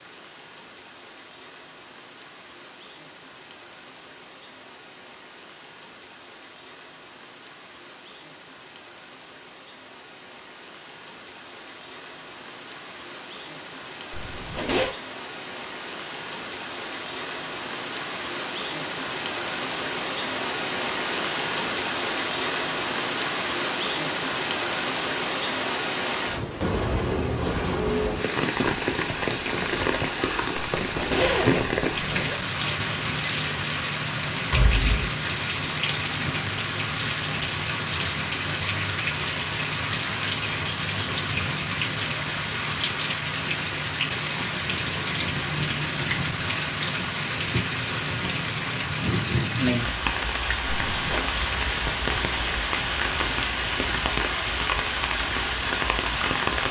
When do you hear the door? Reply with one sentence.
You can hear the door from 34.5 to 35.1 s.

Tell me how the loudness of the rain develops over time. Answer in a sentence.
The loudness of the rain goes up.